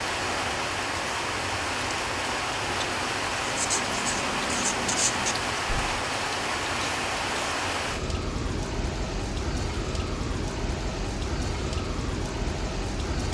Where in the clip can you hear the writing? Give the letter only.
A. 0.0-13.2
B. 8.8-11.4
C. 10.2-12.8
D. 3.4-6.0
D.